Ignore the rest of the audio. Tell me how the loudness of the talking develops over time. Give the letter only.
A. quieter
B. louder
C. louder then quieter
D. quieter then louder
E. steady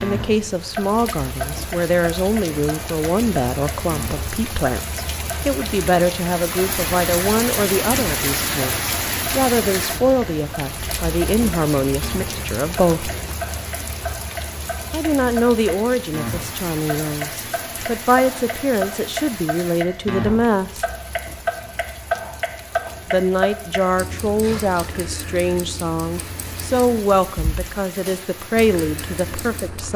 E.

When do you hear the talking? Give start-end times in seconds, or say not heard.
0.0-13.1, 14.9-20.9, 23.1-29.9.